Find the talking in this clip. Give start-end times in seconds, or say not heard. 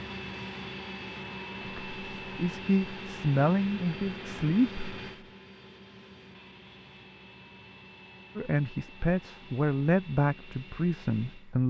1.6-4.8, 8.3-11.6.